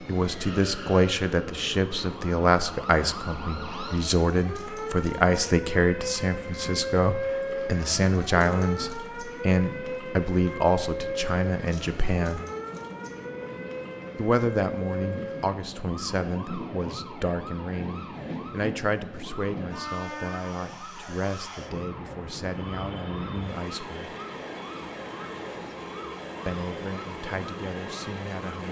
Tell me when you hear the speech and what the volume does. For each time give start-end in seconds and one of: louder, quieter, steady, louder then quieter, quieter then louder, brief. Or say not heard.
0.1-12.4 steady
14.2-24.1 quieter
26.4-28.6 brief.